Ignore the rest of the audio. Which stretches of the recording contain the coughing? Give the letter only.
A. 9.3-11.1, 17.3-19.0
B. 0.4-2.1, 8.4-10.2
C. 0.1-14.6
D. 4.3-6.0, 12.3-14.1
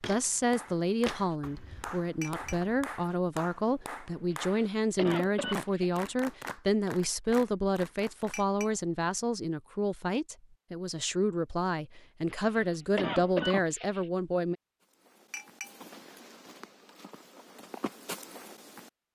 D.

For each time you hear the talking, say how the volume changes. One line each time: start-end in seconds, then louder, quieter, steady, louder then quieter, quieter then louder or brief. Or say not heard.
0.1-14.6 steady.